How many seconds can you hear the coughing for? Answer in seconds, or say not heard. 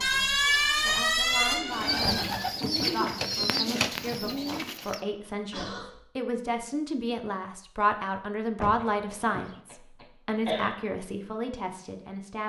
3 s.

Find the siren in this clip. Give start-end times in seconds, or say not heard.
0.0-2.4.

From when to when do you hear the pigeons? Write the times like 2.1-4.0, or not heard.
1.5-5.0.